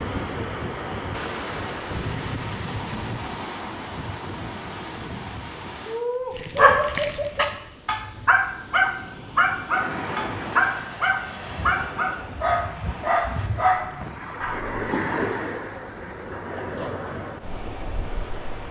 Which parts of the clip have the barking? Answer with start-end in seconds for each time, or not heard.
6.3-14.8.